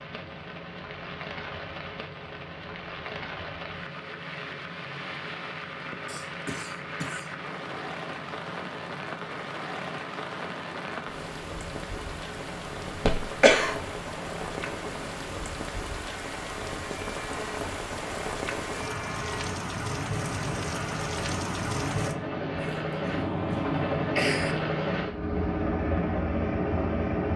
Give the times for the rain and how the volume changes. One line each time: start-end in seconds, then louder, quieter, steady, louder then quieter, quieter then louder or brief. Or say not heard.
0.0-22.1 louder.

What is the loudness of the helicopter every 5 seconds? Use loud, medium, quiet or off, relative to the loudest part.
quiet, quiet, quiet, quiet, loud, loud.